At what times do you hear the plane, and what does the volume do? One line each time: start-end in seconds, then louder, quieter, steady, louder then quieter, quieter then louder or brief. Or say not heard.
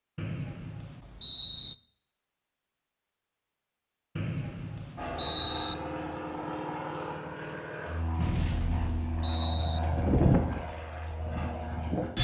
5.0-12.1 louder then quieter.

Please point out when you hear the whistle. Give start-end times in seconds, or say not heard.
0.1-1.8, 4.2-5.8, 8.2-9.8.